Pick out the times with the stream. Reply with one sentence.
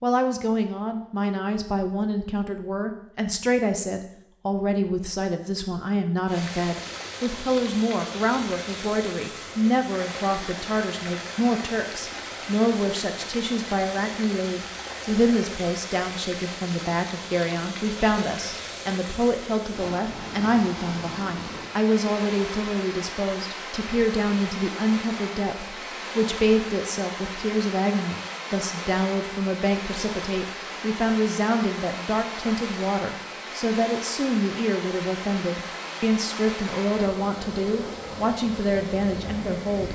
The stream can be heard from 6.2 to 39.8 s.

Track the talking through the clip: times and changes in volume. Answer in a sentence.
You can hear the talking from 0.0 to 39.8 s, at a steady volume.